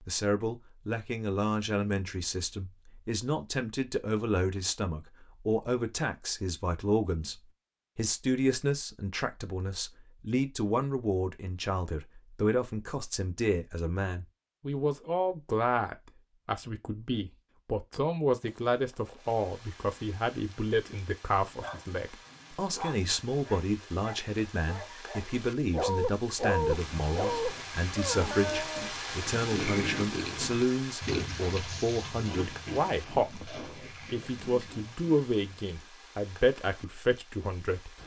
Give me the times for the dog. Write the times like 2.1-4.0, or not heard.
21.4-28.9.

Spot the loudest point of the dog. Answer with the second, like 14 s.
27 s.